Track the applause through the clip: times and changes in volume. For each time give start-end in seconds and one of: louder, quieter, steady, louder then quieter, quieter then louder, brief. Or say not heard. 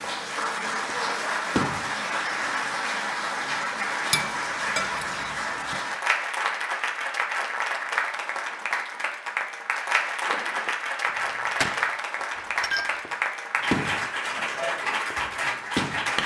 0.0-16.2 steady.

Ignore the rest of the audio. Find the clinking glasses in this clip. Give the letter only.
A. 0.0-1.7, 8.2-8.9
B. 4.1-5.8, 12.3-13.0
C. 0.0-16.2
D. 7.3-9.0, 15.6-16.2
B.